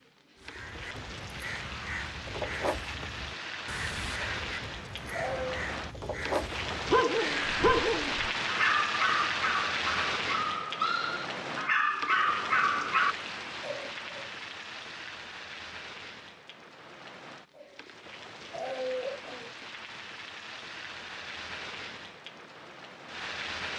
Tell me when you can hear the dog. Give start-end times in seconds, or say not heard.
6.8-13.2.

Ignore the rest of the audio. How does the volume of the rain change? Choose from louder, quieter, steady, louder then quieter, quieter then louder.
louder then quieter.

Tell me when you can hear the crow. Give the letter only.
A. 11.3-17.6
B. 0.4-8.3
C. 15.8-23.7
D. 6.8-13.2
B.